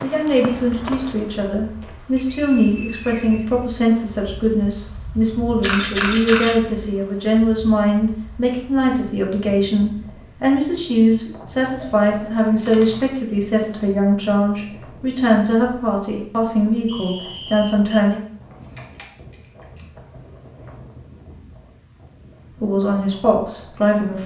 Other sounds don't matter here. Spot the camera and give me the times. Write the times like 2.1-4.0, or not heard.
5.6-6.5, 11.9-13.2, 18.6-19.8.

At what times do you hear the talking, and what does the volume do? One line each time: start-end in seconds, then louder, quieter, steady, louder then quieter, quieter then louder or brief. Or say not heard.
0.0-18.2 steady
22.6-24.2 brief.